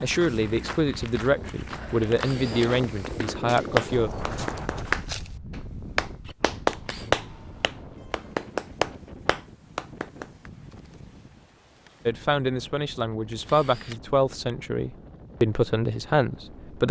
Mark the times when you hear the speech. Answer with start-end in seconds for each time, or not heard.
0.0-4.1, 12.1-16.8.